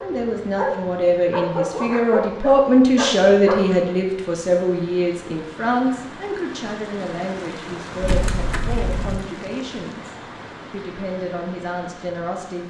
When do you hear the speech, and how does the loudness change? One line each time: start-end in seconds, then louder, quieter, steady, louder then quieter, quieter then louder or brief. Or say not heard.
0.0-12.6 quieter.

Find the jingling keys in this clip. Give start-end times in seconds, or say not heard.
8.0-9.2.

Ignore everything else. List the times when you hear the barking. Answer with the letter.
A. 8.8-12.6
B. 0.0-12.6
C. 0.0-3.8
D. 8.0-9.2
C.